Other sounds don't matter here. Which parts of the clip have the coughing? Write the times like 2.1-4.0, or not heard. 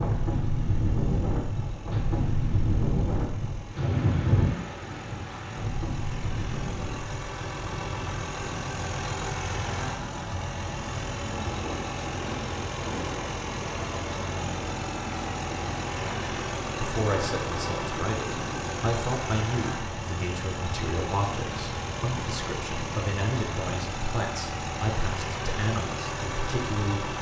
not heard.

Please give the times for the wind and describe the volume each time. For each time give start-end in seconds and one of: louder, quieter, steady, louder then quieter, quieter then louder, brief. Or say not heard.
0.0-18.9 quieter.